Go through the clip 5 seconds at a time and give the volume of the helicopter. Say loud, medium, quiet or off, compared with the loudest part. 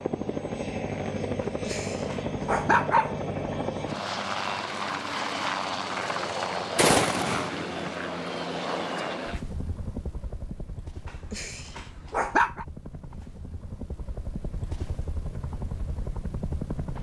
loud, loud, quiet, medium.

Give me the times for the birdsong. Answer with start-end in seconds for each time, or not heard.
not heard.